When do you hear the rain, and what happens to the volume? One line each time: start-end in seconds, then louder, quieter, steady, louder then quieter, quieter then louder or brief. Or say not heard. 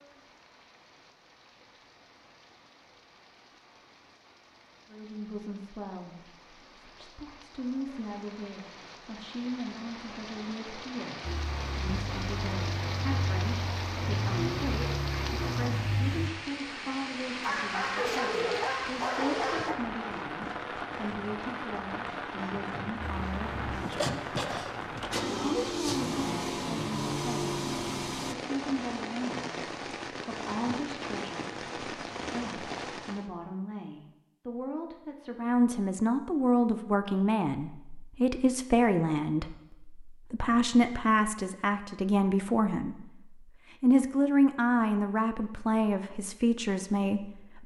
0.0-33.3 louder.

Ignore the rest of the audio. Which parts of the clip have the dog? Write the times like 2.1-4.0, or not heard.
17.4-19.8.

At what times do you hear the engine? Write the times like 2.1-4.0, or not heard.
11.2-16.3, 23.0-28.4.